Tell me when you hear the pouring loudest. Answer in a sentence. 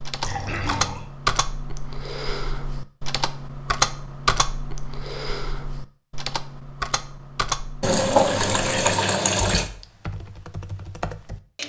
The loudest moment of the pouring is at 8 seconds.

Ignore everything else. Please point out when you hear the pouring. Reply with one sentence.
The pouring can be heard from 0.2 to 1.1 s and from 7.8 to 9.7 s.